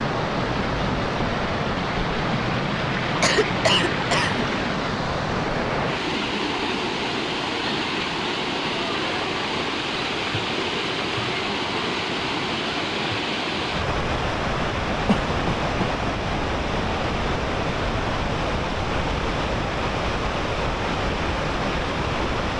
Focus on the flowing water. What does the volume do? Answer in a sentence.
The loudness of the flowing water stays about the same.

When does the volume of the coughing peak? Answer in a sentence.
The loudest moment of the coughing is at 4 seconds.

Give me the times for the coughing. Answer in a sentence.
You can hear the coughing from 3.0 to 4.5 s and from 15.1 to 15.9 s.